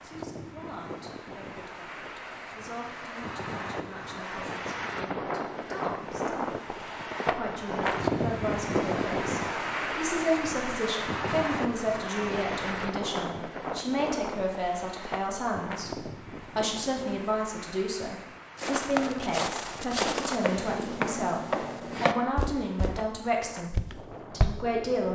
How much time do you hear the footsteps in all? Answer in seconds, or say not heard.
5 s.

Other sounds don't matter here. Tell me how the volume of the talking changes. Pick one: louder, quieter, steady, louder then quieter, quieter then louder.
louder.